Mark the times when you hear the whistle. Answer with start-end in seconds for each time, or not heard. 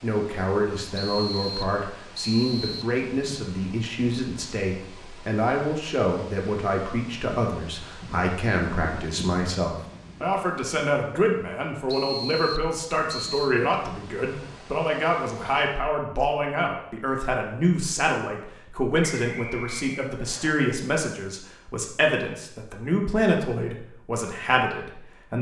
0.9-3.0, 11.8-13.6, 19.2-20.6.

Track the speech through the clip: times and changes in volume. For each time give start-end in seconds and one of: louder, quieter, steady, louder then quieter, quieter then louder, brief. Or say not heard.
0.0-25.3 steady.